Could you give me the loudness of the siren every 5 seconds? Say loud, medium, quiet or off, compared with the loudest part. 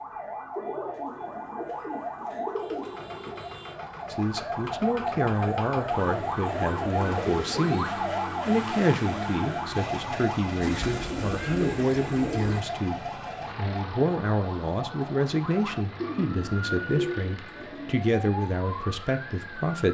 medium, loud, medium, medium.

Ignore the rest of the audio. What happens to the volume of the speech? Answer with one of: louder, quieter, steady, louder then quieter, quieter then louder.
steady.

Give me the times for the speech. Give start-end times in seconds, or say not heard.
4.1-19.8.